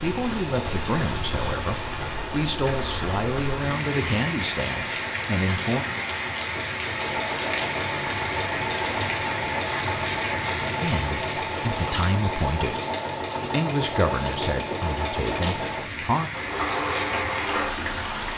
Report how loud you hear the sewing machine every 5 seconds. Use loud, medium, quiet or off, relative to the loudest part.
medium, loud, loud, loud.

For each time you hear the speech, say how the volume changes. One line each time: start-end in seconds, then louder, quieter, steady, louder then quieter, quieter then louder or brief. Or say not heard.
0.0-5.8 steady
10.8-12.8 brief
13.4-16.3 brief.